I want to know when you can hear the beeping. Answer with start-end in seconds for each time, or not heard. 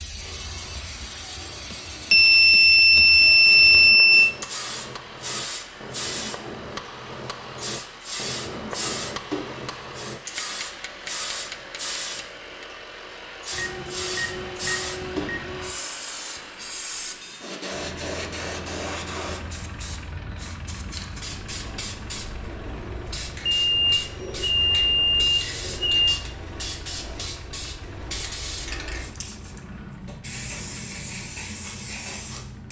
2.1-4.3, 13.5-15.7, 23.4-26.1.